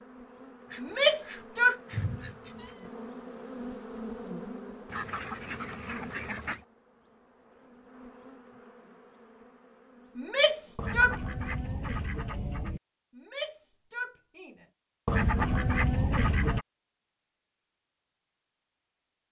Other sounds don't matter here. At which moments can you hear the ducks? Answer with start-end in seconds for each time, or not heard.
0.7-2.9, 4.8-6.7, 10.8-12.8, 15.1-16.6.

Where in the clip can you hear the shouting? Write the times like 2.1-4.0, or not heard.
0.8-1.8, 10.2-11.2, 13.2-14.7.